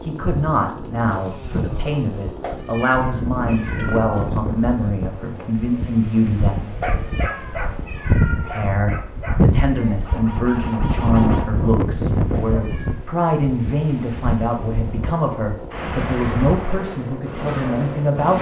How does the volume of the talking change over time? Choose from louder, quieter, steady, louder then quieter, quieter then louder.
steady.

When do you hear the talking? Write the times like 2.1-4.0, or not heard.
0.0-6.8, 8.3-18.3.